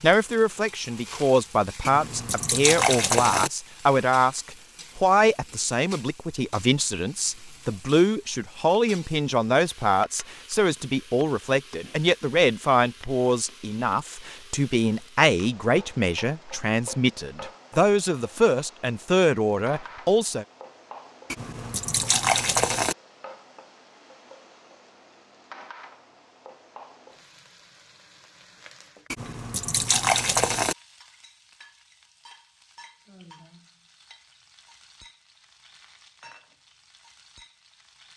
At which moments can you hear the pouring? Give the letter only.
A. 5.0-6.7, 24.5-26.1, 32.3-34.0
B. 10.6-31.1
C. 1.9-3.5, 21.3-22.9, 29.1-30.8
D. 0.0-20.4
C.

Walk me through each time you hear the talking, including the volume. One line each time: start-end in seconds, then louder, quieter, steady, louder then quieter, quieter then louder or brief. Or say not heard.
0.0-20.4 steady.